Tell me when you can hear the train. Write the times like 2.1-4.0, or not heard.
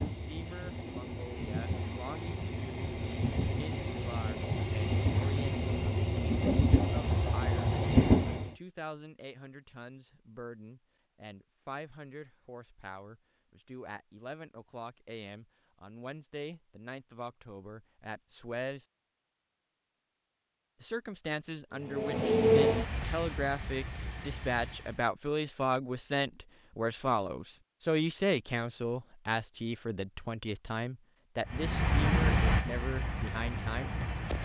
0.0-8.5, 21.8-25.1, 31.4-34.4.